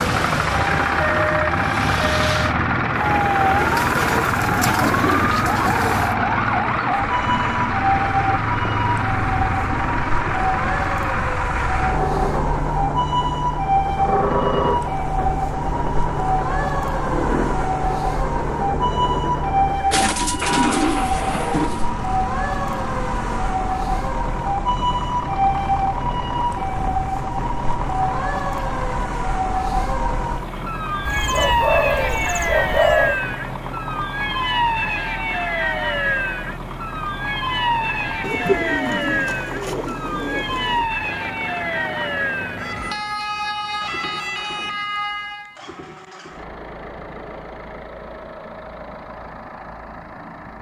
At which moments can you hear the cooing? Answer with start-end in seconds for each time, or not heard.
3.5-6.2, 19.9-21.9, 31.1-33.2, 38.2-40.9.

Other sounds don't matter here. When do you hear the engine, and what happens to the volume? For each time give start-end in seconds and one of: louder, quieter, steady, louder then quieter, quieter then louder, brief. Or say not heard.
0.0-50.5 quieter.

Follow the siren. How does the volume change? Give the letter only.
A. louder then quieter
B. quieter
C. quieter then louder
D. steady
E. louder
D.